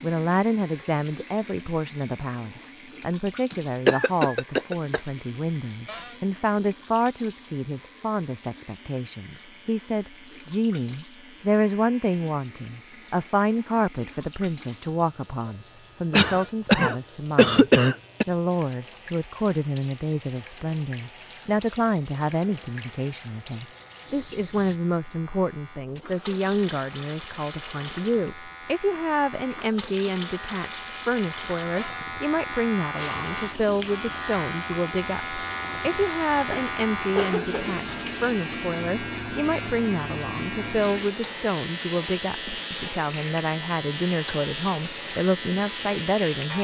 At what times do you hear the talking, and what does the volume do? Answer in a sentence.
The talking can be heard from 0.0 to 46.5 s, at a steady volume.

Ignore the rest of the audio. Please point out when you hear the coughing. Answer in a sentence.
The coughing can be heard from 3.5 to 5.0 s, from 16.1 to 18.2 s and from 36.5 to 37.9 s.